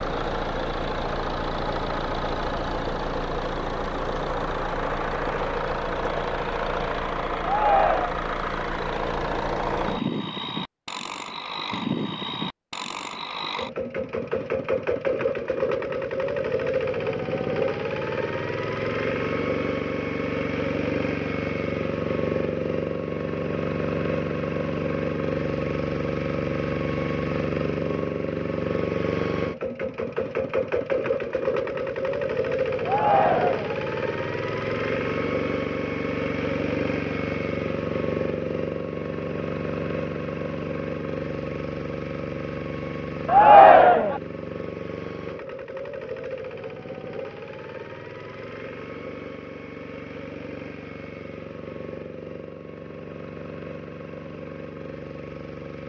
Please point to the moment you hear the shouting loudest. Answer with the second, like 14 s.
44 s.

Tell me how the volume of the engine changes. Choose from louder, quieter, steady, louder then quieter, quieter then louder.
quieter.